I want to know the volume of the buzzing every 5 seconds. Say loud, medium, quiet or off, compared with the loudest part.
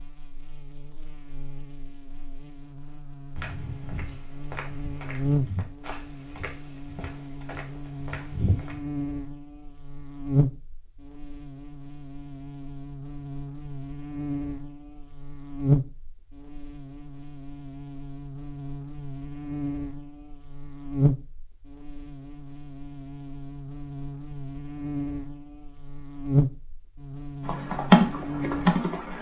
quiet, loud, loud, loud, loud, loud.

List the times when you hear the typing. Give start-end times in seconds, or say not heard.
27.4-29.1.